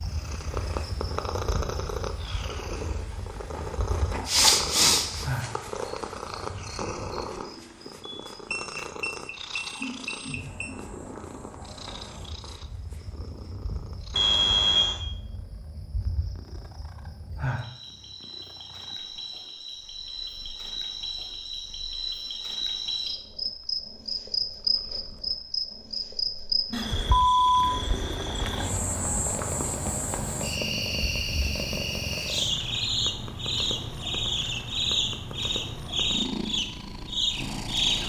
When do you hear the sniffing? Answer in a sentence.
You can hear the sniffing from 4.2 to 5.2 s.